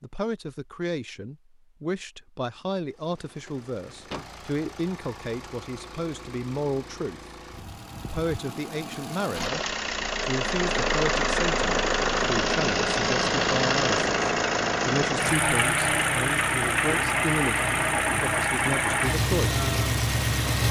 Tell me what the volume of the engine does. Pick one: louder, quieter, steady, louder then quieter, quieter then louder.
louder.